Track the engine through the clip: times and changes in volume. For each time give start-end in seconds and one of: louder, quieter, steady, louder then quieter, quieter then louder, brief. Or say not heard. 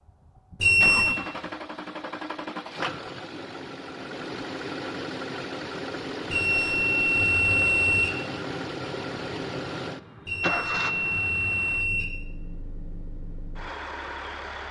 0.1-14.6 quieter.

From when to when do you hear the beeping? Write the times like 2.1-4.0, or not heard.
0.6-1.2, 6.3-8.1, 10.2-12.1.